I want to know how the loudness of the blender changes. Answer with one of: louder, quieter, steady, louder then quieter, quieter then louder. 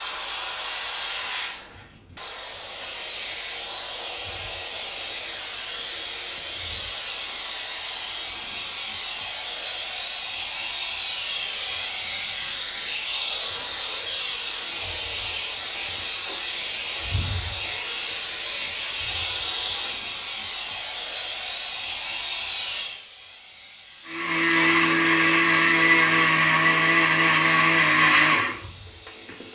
steady.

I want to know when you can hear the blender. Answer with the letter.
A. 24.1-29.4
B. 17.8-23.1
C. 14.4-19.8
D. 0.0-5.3
A.